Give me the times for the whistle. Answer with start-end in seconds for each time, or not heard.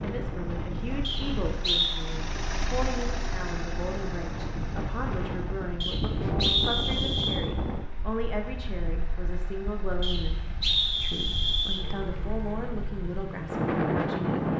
1.0-1.9, 5.8-7.4, 10.0-11.8.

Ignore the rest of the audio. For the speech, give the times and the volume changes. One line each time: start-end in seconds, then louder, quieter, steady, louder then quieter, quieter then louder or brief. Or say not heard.
0.0-14.5 steady.